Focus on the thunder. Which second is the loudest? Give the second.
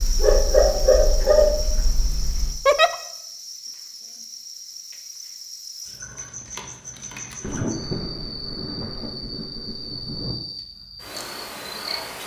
8 s.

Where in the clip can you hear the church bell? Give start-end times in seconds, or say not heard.
not heard.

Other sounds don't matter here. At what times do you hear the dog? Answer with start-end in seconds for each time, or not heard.
0.0-2.6.